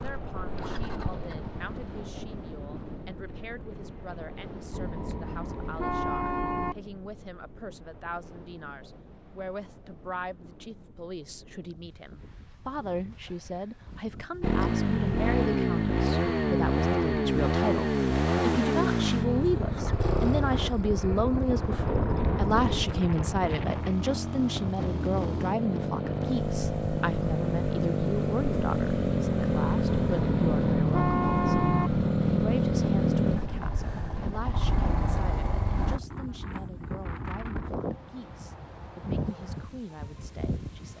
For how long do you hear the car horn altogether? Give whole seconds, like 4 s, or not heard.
5 s.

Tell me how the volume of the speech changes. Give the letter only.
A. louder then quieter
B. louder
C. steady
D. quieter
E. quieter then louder
A.